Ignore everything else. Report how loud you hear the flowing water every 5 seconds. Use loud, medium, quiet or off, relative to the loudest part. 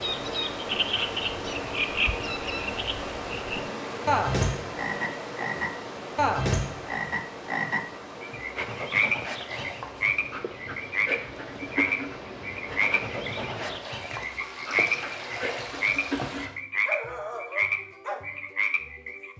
loud, medium, medium, loud.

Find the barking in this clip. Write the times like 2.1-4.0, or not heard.
8.6-18.2.